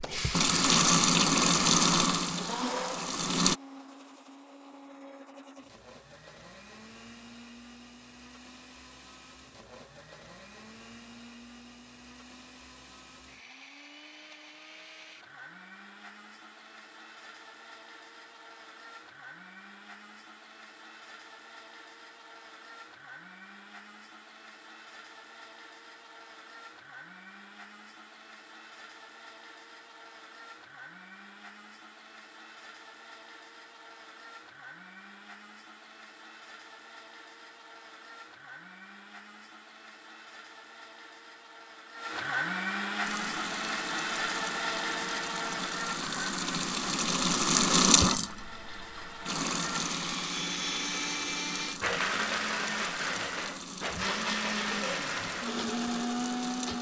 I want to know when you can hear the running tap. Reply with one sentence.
The running tap can be heard from 0.0 to 3.5 s and from 43.0 to 56.7 s.